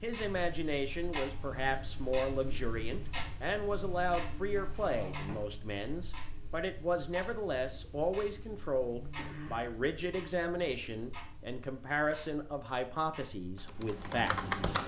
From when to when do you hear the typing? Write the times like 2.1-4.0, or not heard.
13.3-14.8.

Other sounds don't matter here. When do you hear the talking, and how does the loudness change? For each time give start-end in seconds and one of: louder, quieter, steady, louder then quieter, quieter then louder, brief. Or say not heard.
0.0-14.3 steady.